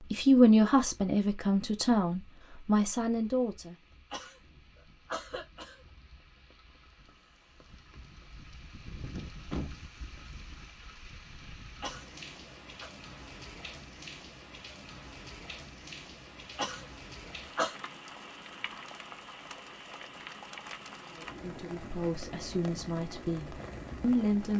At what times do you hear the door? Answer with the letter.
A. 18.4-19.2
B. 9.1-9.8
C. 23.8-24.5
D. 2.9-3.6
B.